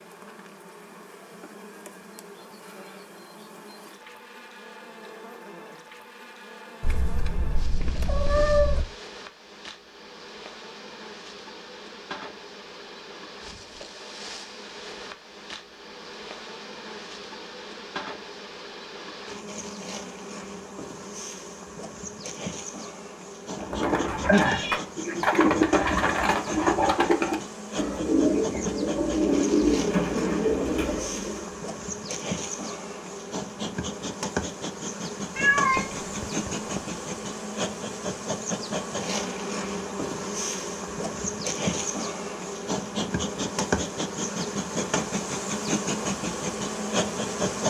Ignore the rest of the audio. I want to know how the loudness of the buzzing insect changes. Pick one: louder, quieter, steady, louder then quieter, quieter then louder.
louder.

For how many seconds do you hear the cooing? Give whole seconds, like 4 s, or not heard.
8 s.